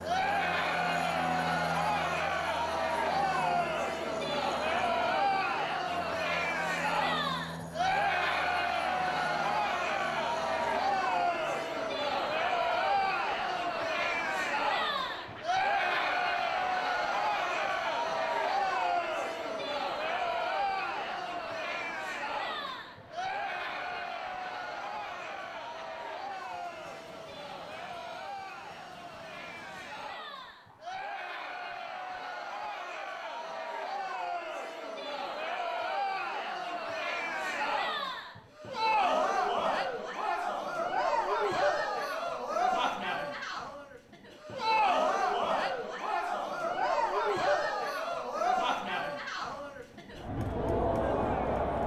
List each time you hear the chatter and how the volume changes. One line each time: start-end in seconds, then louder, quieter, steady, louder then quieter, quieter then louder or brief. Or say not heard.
0.0-51.8 quieter then louder.